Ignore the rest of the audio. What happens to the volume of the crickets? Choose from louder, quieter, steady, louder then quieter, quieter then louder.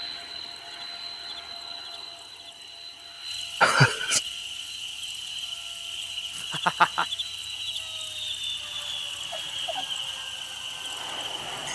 louder.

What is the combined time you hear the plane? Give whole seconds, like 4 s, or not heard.
12 s.